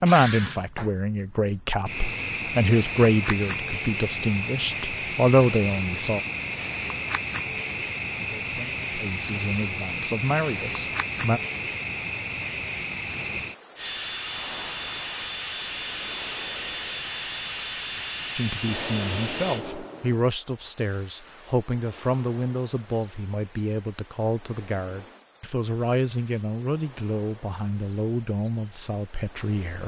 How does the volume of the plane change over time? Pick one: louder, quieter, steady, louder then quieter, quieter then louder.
steady.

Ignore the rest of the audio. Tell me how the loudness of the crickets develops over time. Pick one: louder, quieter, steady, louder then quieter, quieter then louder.
quieter.